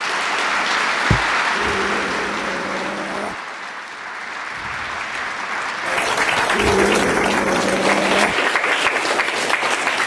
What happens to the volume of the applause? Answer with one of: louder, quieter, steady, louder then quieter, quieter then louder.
quieter then louder.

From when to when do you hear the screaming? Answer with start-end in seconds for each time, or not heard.
1.6-3.4, 6.5-8.3.